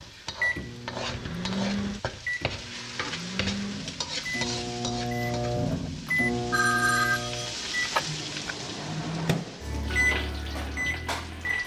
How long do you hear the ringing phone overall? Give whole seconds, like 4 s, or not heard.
2 s.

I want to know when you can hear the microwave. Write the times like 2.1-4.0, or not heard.
0.0-11.6.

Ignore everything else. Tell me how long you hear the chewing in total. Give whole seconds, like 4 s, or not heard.
not heard.